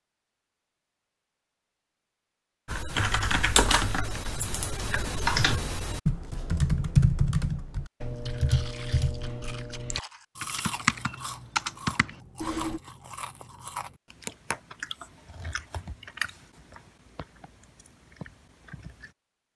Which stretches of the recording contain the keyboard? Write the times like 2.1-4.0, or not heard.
2.6-12.8.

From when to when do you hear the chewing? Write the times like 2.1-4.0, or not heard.
8.2-19.1.